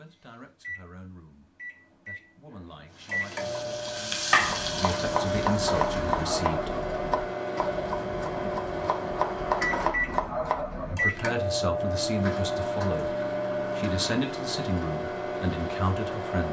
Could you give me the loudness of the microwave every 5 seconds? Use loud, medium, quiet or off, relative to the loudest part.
medium, loud, loud, loud.